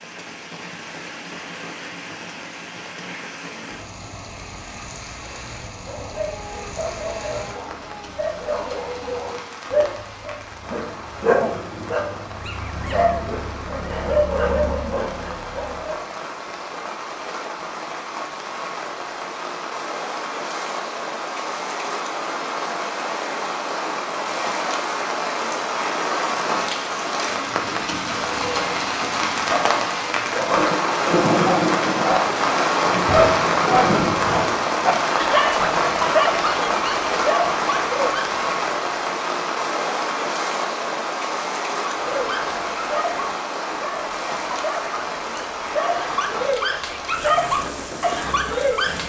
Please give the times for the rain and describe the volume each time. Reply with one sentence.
You can hear the rain from 0.0 to 49.0 s, getting louder then quieter.